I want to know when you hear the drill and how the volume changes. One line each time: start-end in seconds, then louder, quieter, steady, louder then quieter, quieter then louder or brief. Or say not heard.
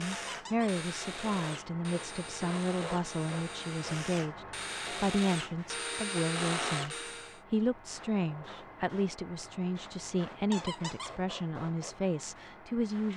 0.0-7.4 louder.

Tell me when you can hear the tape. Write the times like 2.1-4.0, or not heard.
not heard.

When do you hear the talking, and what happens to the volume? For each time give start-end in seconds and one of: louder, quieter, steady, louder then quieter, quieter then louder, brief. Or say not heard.
0.0-13.1 steady.